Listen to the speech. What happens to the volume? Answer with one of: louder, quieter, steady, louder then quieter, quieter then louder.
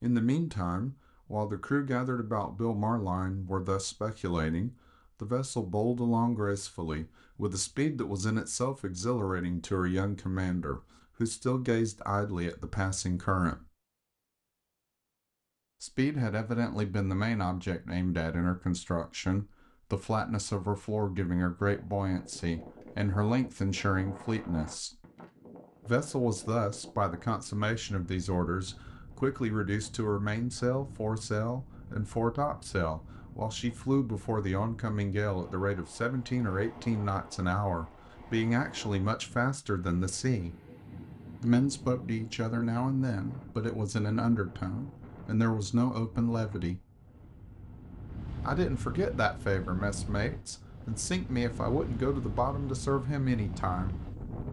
steady.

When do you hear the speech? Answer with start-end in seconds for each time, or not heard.
0.0-13.7, 15.8-24.9, 25.9-40.5, 41.4-46.8, 48.4-54.0.